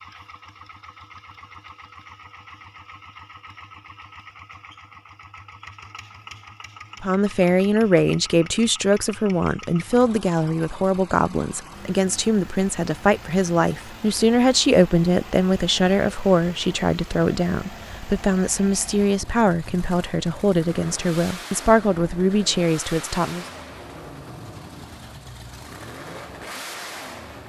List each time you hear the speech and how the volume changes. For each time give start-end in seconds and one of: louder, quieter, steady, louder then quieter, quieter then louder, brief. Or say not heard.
7.0-23.4 steady.